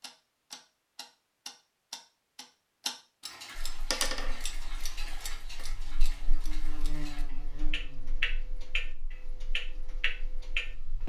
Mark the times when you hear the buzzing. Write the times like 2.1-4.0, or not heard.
3.5-11.0.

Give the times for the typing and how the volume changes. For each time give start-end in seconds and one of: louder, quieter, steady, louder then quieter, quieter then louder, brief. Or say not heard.
not heard.